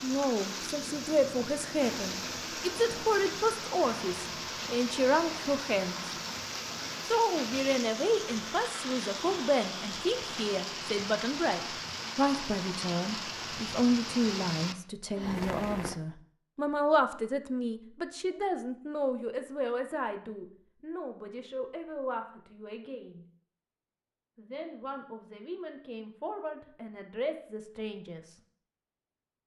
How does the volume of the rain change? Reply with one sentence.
The volume of the rain stays about the same.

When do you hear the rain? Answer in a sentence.
The rain can be heard from 0.0 to 15.9 s.